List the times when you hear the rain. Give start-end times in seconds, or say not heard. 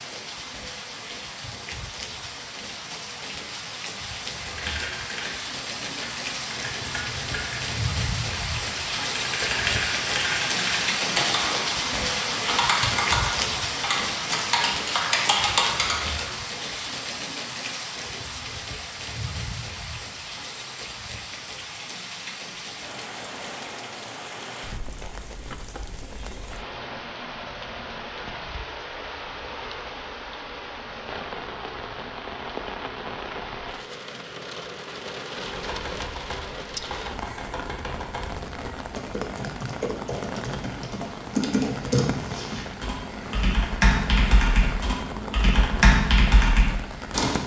0.0-47.4.